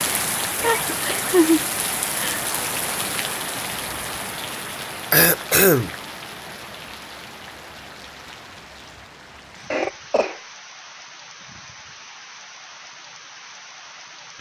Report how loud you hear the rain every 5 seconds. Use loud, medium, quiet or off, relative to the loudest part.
loud, quiet, quiet.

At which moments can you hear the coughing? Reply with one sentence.
You can hear the coughing from 0.6 to 1.4 s, from 5.1 to 5.9 s and from 9.7 to 10.4 s.